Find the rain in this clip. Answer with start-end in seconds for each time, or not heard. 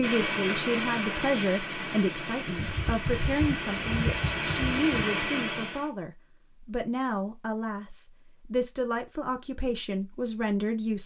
0.0-5.9.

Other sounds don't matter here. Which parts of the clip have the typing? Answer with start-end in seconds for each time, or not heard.
2.5-4.9.